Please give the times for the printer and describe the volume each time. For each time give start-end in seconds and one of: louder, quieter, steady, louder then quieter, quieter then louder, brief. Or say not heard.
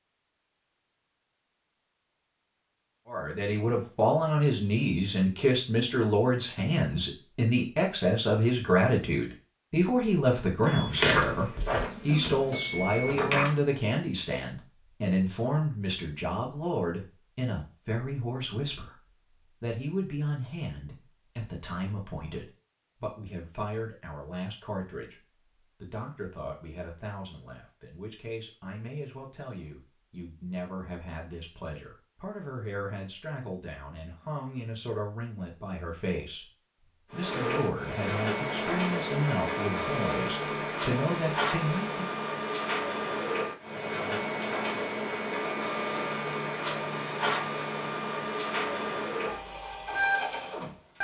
10.6-13.6 brief
37.1-50.9 steady.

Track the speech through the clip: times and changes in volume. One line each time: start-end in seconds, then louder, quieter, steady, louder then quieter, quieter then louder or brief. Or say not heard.
3.0-42.1 quieter then louder.